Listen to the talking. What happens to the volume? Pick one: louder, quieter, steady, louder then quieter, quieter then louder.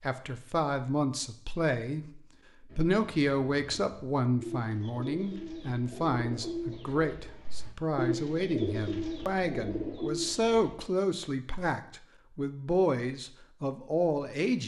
steady.